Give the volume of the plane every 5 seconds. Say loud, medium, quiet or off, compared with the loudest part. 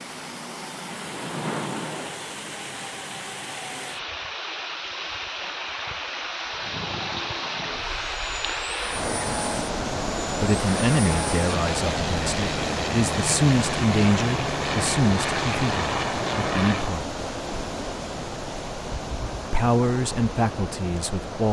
medium, medium, loud, loud, off.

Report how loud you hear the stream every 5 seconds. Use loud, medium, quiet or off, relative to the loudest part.
medium, loud, loud, loud, medium.